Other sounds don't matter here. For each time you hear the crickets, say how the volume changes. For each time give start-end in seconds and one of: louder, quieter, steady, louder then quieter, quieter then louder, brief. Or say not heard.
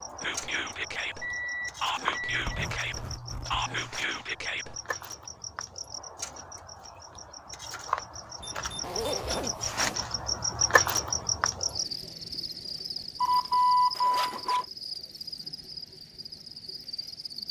0.0-17.4 louder then quieter.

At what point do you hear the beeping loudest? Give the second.
14 s.